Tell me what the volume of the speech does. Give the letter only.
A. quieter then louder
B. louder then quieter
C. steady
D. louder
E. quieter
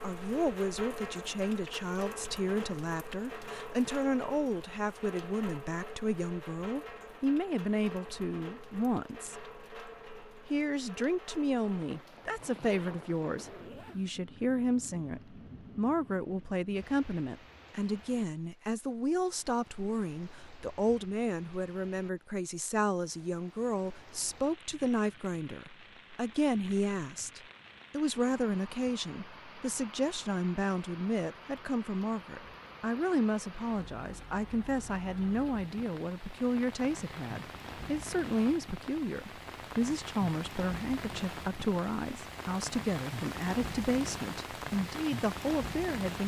C.